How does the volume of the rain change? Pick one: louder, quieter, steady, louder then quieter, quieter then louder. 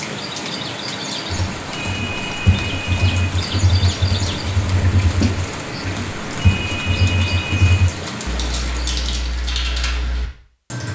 steady.